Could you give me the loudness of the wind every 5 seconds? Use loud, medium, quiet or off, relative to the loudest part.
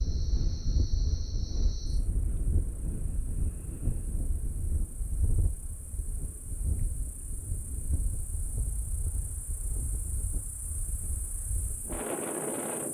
loud, medium, loud.